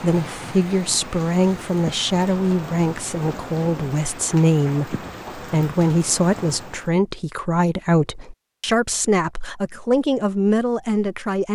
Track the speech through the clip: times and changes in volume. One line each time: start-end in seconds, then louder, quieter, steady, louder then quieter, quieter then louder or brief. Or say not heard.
0.0-11.5 steady.